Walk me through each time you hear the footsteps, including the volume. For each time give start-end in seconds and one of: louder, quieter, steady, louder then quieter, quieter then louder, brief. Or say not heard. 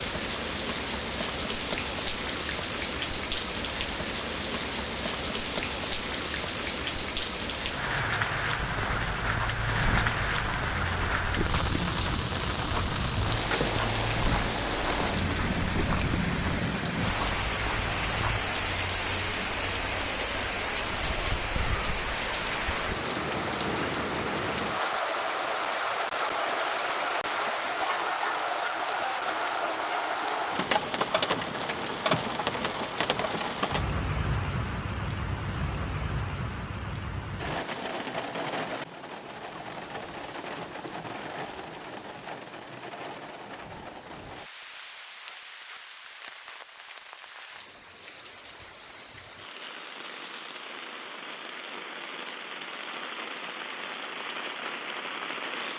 8.6-18.4 steady.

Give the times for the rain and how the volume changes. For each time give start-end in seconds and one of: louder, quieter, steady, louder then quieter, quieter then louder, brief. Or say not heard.
0.0-55.7 quieter.